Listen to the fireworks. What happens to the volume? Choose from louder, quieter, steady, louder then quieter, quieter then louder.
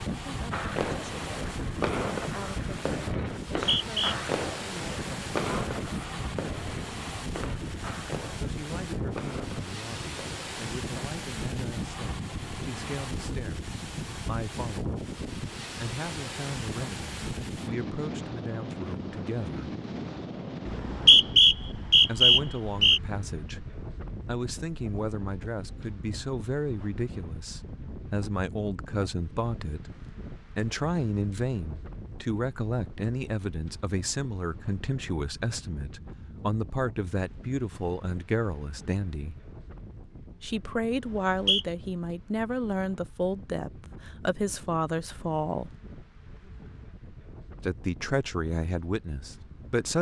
quieter.